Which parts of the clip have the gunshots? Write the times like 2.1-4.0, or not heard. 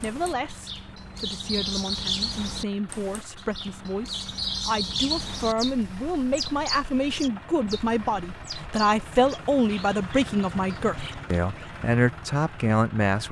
not heard.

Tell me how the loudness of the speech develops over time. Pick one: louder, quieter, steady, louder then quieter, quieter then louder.
louder.